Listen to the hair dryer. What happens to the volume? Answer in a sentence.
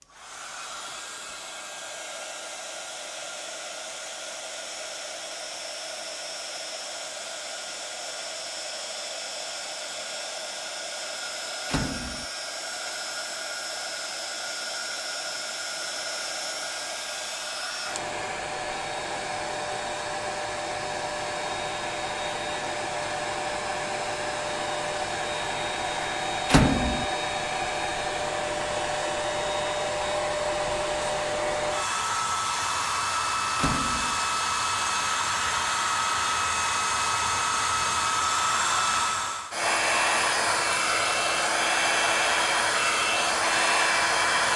The loudness of the hair dryer goes up.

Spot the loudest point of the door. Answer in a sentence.
The loudest moment of the door is at 27 seconds.